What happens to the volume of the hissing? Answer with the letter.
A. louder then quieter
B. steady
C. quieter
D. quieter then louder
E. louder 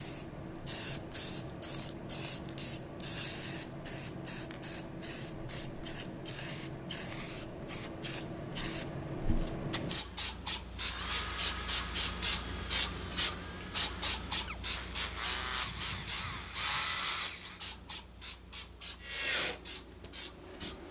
A.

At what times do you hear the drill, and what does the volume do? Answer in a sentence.
You can hear the drill from 10.8 to 17.6 s, getting quieter then louder; and briefly from 19.0 to 20.8 s.